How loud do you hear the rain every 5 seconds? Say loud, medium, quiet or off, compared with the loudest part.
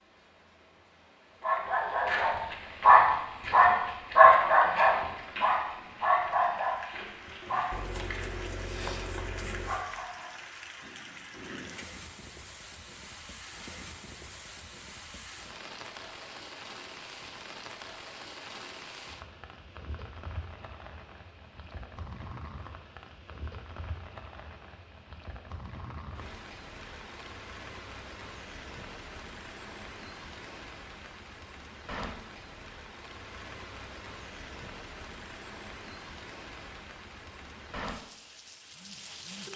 quiet, loud, loud, loud, loud, loud, loud, loud.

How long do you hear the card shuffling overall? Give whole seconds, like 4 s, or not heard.
2 s.